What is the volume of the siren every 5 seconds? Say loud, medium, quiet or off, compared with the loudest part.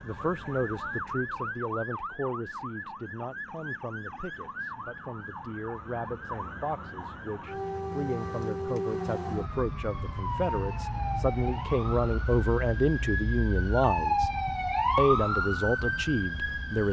medium, medium, loud, loud.